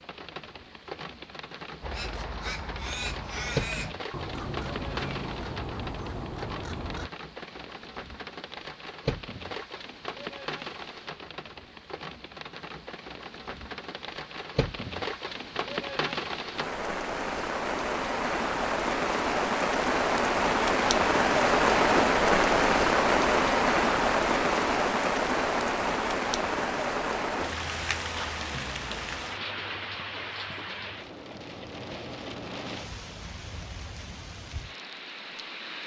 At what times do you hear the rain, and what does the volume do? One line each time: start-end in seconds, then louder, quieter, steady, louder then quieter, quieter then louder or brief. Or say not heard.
0.0-35.8 louder then quieter.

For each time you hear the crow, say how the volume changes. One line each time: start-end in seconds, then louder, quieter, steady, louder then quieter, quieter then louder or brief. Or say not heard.
1.8-7.1 steady.